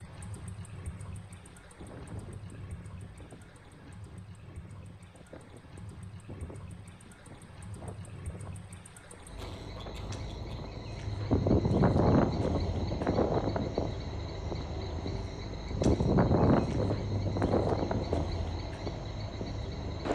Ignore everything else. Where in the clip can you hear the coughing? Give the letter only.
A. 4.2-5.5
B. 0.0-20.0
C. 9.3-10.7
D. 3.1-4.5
C.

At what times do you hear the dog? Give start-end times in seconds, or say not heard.
not heard.